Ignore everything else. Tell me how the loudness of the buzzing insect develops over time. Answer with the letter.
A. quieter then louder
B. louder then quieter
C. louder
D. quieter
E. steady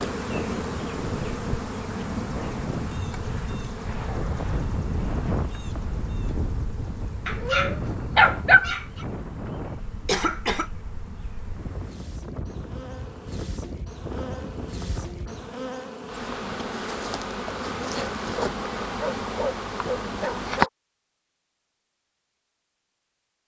A.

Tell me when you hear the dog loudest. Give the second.
8 s.